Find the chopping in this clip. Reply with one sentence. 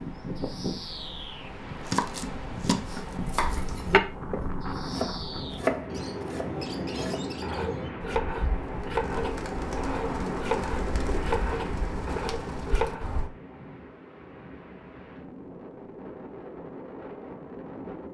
The chopping can be heard from 1.8 to 13.1 s.